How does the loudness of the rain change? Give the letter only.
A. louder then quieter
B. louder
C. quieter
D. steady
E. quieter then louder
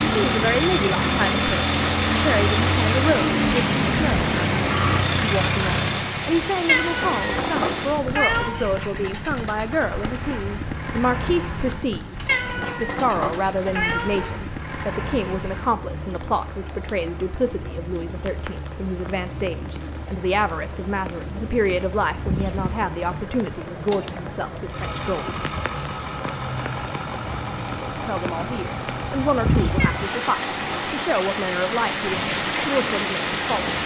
E.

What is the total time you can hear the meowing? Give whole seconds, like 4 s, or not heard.
5 s.